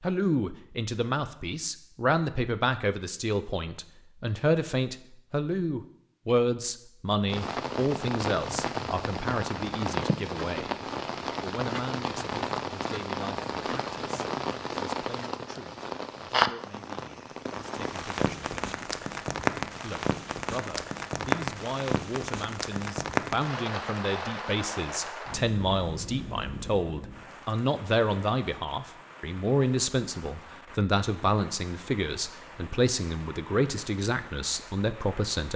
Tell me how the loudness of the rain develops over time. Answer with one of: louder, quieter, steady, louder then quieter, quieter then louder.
quieter.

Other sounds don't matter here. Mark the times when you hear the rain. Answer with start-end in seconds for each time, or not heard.
7.2-35.5.